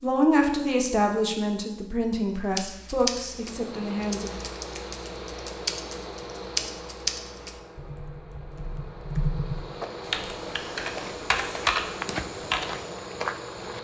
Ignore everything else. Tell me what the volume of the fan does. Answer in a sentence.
The volume of the fan goes down, then up.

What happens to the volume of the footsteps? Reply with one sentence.
The loudness of the footsteps goes up.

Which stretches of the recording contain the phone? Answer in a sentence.
The phone can't be heard in this clip.